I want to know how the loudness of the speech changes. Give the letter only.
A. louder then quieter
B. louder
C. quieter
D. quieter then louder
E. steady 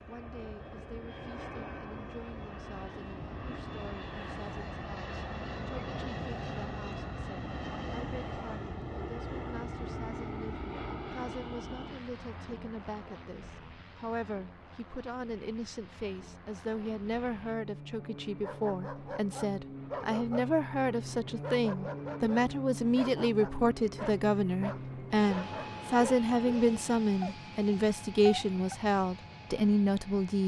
B.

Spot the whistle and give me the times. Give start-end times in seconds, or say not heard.
not heard.